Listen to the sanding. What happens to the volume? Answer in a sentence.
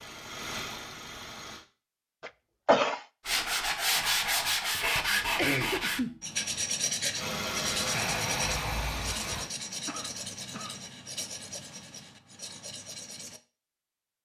The loudness of the sanding goes down.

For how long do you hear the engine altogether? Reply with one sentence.
You can hear the engine for 4 seconds altogether.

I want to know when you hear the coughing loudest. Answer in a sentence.
The loudest moment of the coughing is at 3 seconds.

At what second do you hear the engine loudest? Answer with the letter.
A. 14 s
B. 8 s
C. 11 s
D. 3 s
B.